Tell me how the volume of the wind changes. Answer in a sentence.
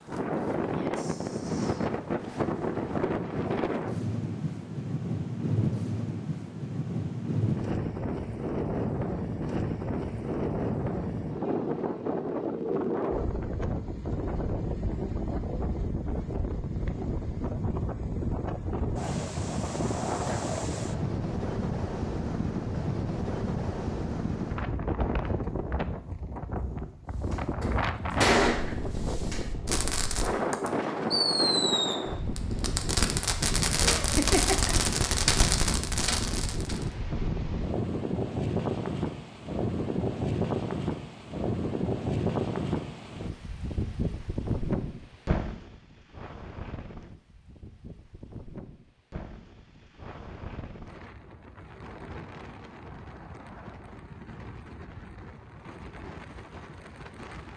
The volume of the wind goes down.